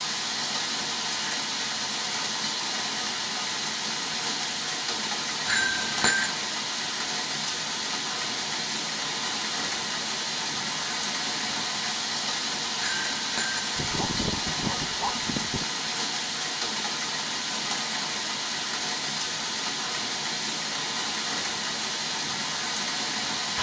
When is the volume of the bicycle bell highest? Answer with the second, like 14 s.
6 s.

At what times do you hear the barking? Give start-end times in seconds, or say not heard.
13.8-15.7.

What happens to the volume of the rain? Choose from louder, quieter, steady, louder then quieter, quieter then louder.
steady.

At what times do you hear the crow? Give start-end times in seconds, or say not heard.
not heard.